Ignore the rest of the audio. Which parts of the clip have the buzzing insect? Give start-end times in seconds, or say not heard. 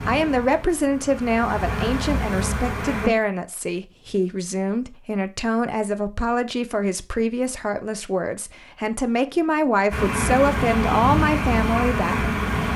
0.0-3.1, 9.9-12.7.